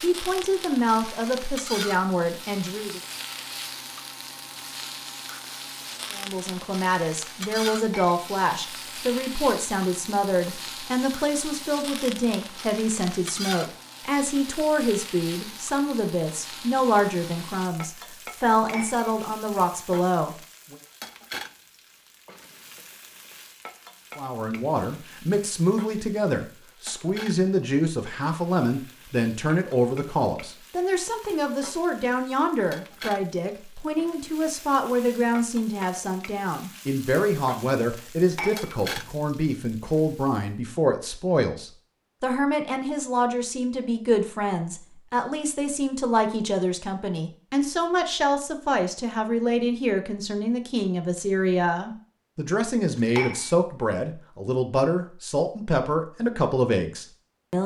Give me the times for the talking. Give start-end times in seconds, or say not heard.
0.0-3.0, 6.1-20.8, 24.1-57.6.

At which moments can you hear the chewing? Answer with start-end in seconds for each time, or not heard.
not heard.